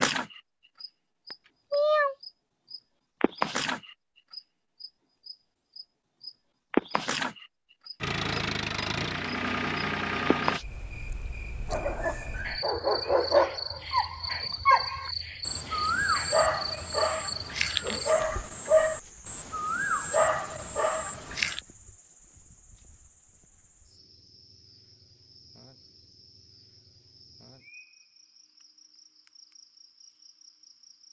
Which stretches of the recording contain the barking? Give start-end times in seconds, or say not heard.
11.7-21.6.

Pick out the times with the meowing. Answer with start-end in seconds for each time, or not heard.
1.3-2.1.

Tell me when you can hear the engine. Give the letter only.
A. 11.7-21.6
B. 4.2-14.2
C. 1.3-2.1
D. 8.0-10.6
D.